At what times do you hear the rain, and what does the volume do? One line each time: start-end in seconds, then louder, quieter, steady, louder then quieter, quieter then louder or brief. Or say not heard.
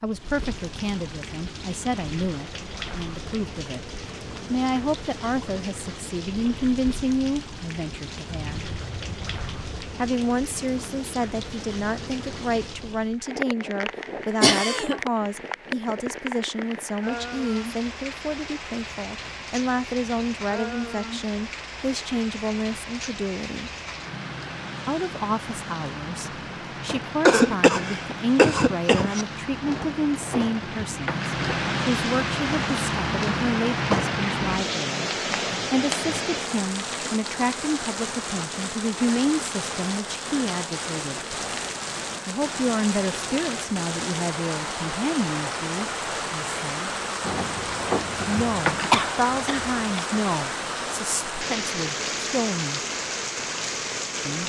0.0-54.4 louder.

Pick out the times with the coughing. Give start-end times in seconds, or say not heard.
14.4-15.0, 27.2-29.2, 48.9-50.0.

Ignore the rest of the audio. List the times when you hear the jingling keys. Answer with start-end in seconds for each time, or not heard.
8.4-9.8, 29.6-31.6, 47.2-49.0.